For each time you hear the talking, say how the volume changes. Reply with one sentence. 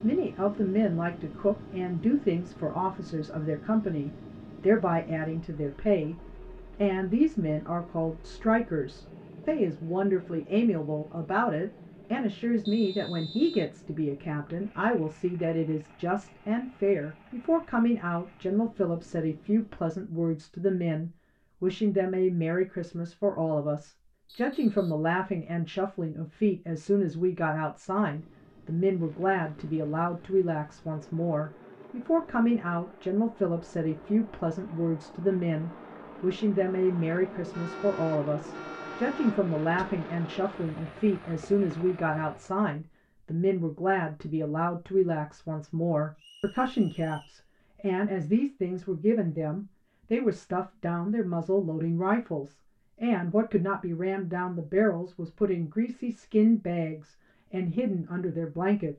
You can hear the talking from 0.0 to 58.9 s, at a steady volume.